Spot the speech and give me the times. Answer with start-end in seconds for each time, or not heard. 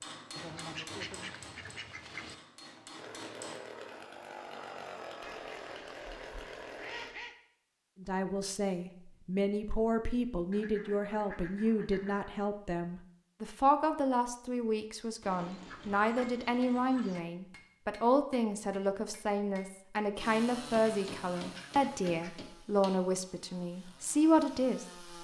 8.0-25.1.